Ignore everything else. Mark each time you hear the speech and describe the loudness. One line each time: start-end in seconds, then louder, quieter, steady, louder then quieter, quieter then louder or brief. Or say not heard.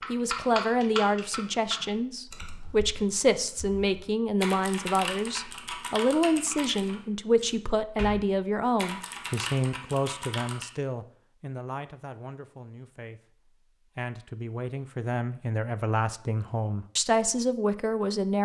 0.1-18.4 quieter then louder.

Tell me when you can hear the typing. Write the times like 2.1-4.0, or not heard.
0.0-10.7.